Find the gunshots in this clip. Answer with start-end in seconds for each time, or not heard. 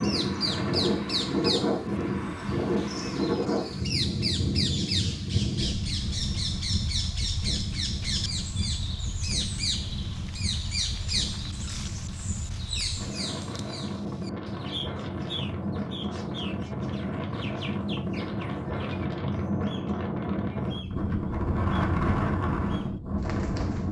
0.5-0.9.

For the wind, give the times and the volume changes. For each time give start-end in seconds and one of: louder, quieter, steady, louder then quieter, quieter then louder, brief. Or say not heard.
0.0-23.8 quieter then louder.